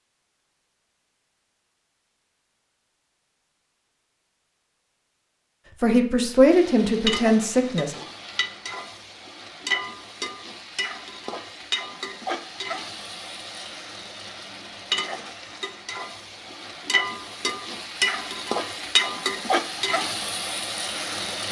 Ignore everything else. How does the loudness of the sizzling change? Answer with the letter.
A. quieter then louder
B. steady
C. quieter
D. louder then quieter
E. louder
E.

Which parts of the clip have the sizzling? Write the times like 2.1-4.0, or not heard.
6.4-21.4.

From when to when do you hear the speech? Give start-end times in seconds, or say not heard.
5.8-8.0.